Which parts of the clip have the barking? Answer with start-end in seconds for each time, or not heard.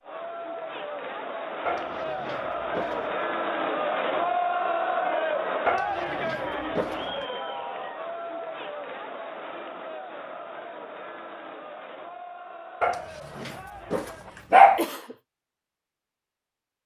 1.6-3.1, 5.7-7.2, 12.8-14.8.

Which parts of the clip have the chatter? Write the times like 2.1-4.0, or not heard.
0.0-14.6.